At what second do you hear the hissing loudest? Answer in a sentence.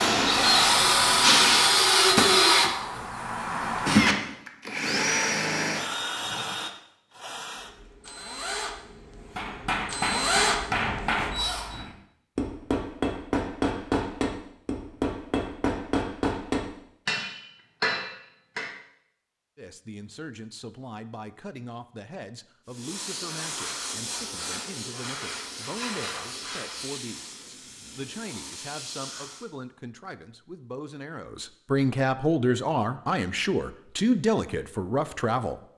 The loudest moment of the hissing is at 1 second.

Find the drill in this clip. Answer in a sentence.
The drill can be heard from 0.0 to 11.8 s.